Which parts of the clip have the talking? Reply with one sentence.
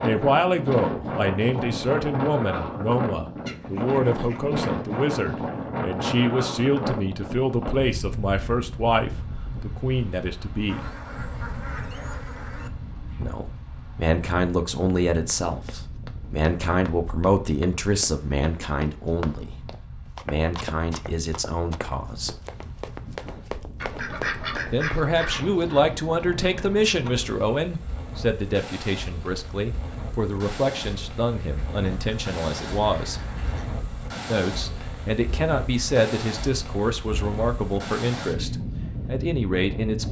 You can hear the talking from 0.0 to 10.9 s, from 13.2 to 19.6 s, from 20.2 to 22.3 s, from 24.7 to 33.2 s and from 34.3 to 40.0 s.